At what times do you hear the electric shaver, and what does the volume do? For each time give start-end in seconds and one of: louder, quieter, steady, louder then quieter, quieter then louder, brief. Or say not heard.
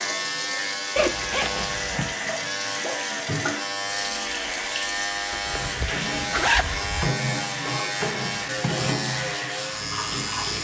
0.0-10.5 steady.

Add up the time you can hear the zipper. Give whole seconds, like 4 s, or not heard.
3 s.